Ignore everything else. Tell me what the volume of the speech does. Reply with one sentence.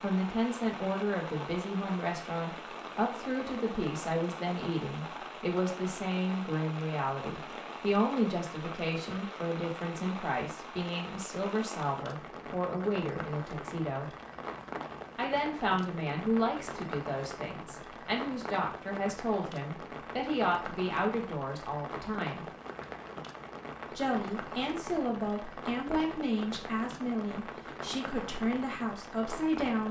The volume of the speech stays about the same.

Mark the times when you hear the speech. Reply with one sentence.
The speech can be heard from 0.0 to 14.1 s, from 15.2 to 22.4 s and from 23.9 to 29.8 s.